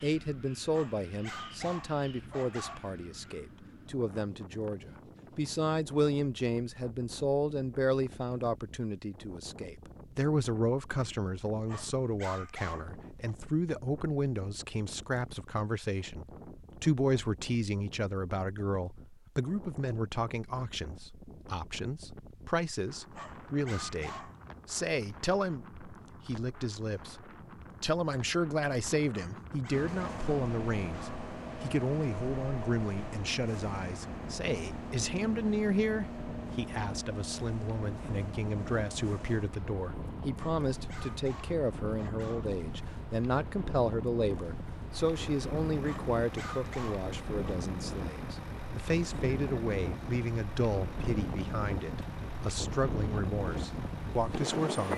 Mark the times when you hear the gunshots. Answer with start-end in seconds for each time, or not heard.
not heard.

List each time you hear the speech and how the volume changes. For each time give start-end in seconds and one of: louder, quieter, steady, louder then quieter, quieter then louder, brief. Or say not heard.
0.0-54.9 steady.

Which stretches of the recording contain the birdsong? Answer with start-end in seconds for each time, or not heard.
not heard.